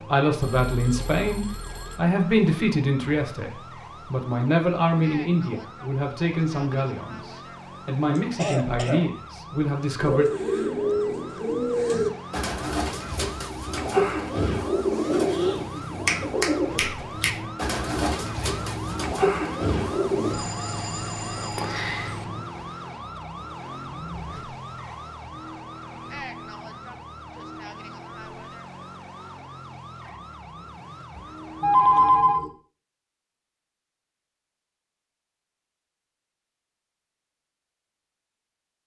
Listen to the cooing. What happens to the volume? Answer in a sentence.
The volume of the cooing stays about the same.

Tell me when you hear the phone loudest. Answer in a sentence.
The loudest moment of the phone is at 32 seconds.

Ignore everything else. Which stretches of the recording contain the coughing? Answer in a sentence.
The coughing can be heard from 8.2 to 9.1 s.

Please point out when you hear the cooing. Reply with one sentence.
The cooing can be heard from 9.9 to 20.4 s.